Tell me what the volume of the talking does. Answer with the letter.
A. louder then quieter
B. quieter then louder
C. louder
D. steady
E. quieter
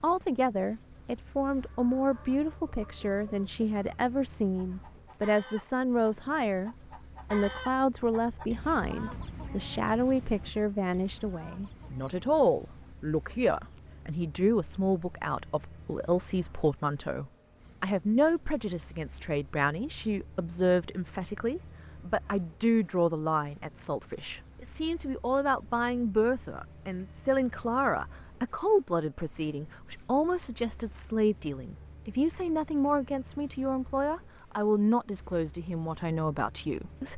D.